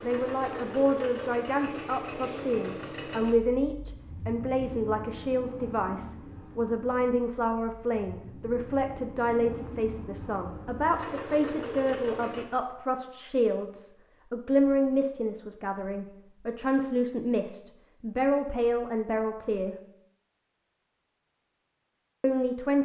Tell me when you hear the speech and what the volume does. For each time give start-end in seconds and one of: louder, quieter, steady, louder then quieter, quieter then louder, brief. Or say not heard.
0.0-19.8 steady
22.2-22.7 brief.